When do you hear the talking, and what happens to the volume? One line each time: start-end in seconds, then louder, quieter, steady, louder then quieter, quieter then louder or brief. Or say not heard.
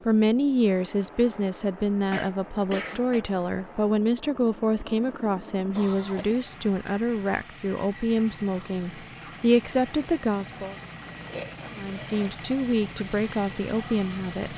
0.1-10.8 steady
11.8-14.5 brief.